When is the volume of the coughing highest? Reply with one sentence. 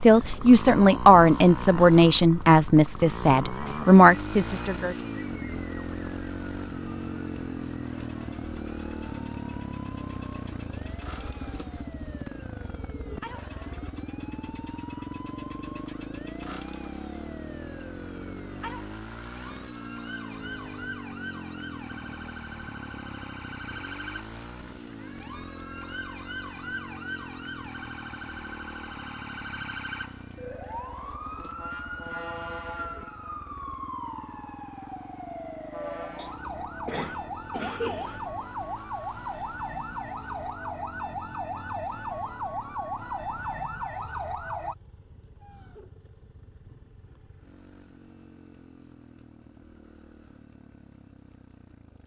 The loudest moment of the coughing is at 38 seconds.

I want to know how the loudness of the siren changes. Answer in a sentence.
The loudness of the siren goes up.